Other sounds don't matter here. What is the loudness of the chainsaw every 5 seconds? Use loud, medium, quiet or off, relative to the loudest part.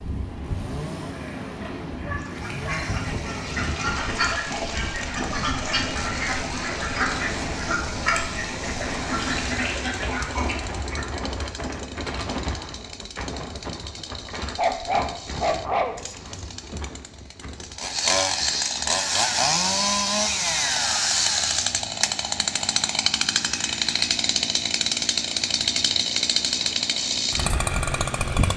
quiet, quiet, quiet, loud, loud, loud.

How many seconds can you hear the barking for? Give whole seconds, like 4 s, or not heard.
3 s.